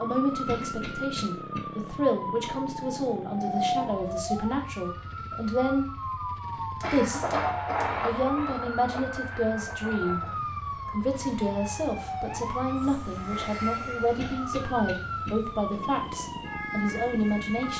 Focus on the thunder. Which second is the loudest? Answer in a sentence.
The volume of the thunder peaks at 8 seconds.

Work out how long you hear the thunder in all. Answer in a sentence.
The thunder can be heard for 3 seconds in total.